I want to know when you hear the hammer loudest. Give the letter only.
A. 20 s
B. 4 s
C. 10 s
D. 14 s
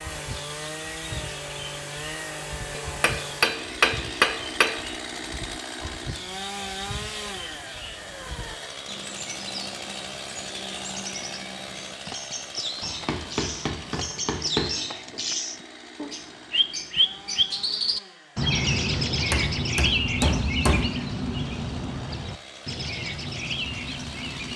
B.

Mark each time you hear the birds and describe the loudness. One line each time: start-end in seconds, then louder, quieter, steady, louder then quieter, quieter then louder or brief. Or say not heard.
0.0-24.5 louder.